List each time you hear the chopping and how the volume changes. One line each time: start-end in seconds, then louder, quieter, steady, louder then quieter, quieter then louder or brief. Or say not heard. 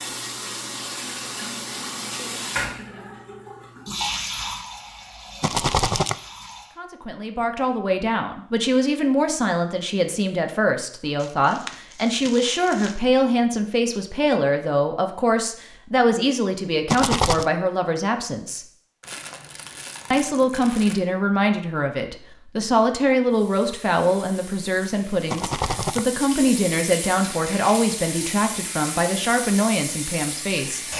not heard.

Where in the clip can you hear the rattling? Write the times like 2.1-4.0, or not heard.
5.4-6.2, 16.9-17.5, 25.3-26.1.